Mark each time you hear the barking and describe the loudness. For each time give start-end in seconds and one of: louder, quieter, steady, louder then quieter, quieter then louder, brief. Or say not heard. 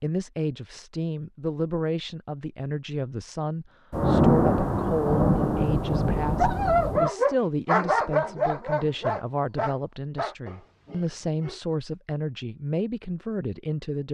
6.3-11.6 quieter.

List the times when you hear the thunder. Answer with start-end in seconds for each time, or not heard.
3.9-7.1.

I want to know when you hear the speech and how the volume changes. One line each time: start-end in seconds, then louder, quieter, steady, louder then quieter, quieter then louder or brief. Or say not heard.
0.0-14.0 steady.